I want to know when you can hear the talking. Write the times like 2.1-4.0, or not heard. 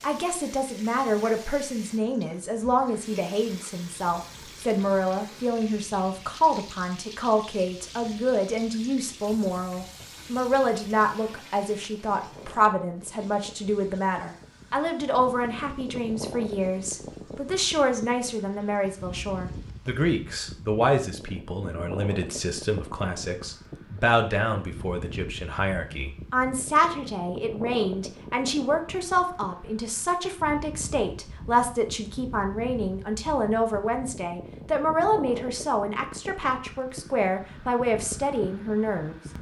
0.0-39.1.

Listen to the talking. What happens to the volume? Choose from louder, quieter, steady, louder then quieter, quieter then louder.
steady.